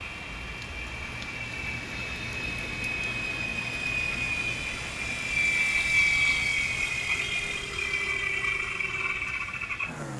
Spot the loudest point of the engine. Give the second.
6 s.